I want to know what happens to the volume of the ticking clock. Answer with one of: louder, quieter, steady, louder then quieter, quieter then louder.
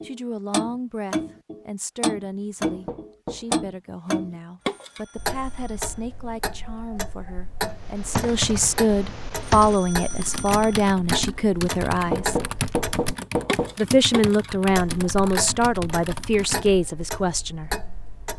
quieter.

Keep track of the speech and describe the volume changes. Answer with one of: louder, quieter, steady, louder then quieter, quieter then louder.
louder.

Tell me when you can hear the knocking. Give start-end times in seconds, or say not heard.
2.6-3.7, 12.1-13.8.